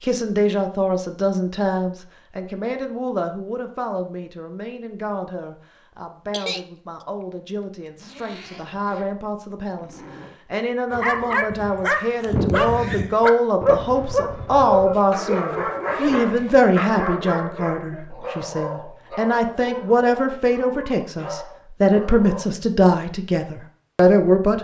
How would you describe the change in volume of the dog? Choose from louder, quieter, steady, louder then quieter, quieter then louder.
quieter.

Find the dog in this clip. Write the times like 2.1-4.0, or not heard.
10.9-22.4.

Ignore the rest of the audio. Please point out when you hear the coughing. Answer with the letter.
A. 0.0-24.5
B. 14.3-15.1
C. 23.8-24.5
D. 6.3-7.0
D.